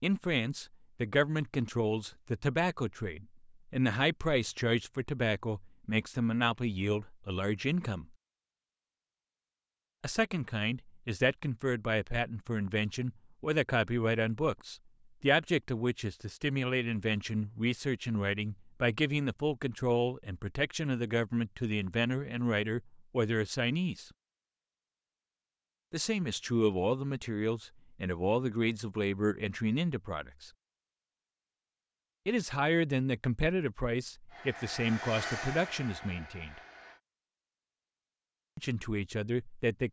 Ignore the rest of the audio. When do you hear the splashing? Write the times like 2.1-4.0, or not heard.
not heard.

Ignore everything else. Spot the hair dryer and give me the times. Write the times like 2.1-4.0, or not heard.
34.2-37.0.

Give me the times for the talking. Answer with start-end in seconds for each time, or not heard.
0.0-8.1, 10.0-24.1, 25.9-30.5, 32.2-36.6, 38.5-39.8.